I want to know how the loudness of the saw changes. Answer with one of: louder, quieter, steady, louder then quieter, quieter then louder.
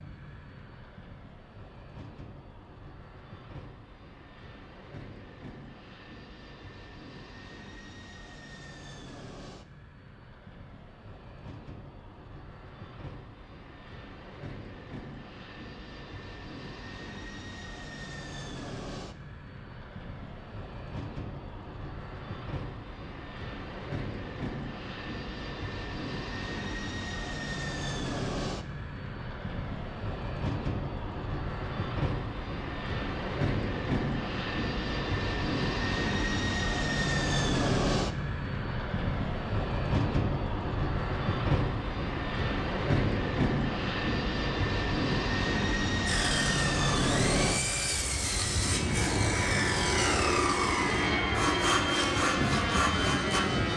steady.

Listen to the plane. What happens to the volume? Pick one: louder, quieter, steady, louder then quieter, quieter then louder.
louder.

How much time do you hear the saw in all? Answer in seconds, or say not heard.
7 s.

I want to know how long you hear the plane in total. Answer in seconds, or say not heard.
54 s.